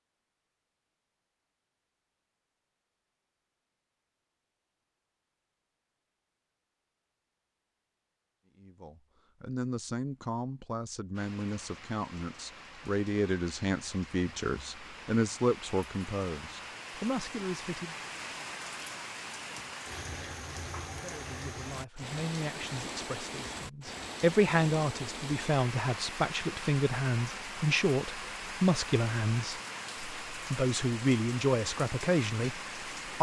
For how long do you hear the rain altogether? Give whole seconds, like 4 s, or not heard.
22 s.